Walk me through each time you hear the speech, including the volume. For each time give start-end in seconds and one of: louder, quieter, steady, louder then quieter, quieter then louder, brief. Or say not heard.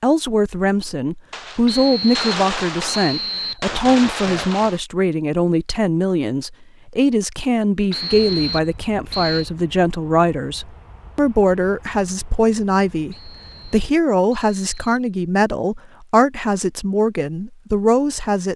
0.0-18.5 steady.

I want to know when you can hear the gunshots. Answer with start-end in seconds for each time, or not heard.
1.3-4.8.